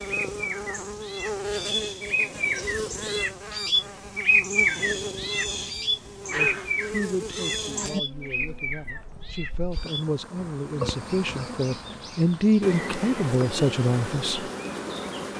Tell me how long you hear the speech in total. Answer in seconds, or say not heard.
8 s.